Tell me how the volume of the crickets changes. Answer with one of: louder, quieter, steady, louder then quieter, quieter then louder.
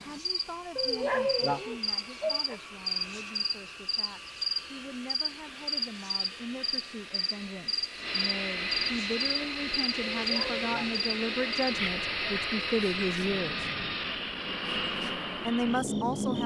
quieter.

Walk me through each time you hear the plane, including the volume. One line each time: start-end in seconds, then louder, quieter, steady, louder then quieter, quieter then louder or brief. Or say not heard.
0.0-16.4 louder.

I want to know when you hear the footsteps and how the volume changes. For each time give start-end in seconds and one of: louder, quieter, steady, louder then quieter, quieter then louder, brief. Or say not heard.
not heard.